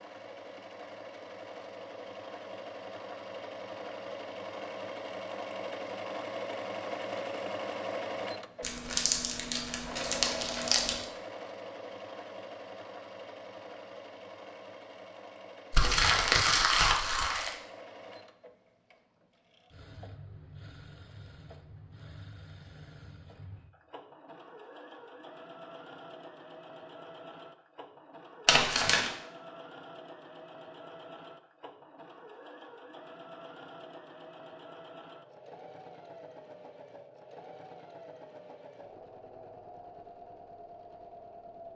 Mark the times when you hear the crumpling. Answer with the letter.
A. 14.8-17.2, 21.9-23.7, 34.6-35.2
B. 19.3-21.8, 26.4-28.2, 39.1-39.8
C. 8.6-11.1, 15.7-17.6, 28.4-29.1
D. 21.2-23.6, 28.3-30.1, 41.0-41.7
C.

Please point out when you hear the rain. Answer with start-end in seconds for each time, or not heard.
not heard.